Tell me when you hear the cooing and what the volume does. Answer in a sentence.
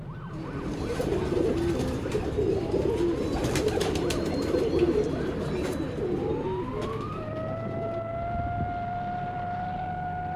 You can hear the cooing from 0.3 to 8.8 s, getting quieter.